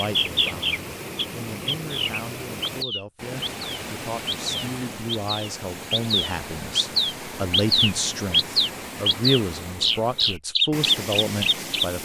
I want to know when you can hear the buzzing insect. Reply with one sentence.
The buzzing insect can't be heard in this clip.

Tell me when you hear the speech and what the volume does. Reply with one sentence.
You can hear the speech from 0.0 to 12.0 s, getting louder.